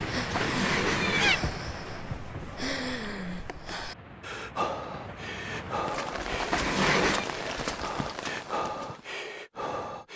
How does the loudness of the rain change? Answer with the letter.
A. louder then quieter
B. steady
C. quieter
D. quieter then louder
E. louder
D.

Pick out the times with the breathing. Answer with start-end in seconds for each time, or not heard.
0.0-10.1.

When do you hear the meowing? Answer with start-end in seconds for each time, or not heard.
0.3-1.4, 6.5-7.3.